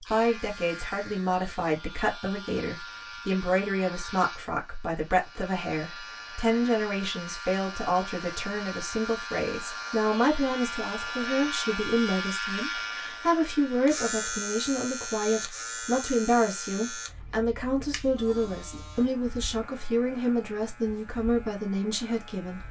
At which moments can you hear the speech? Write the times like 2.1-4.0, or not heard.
0.1-22.6.